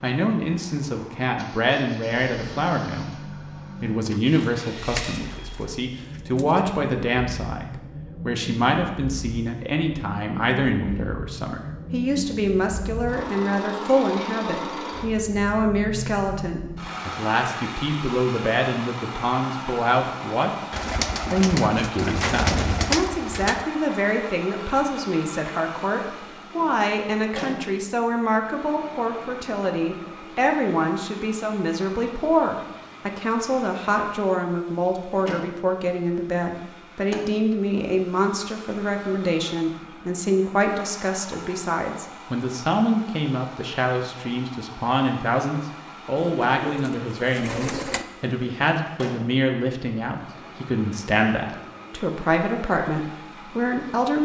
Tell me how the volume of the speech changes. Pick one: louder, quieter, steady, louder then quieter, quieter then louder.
steady.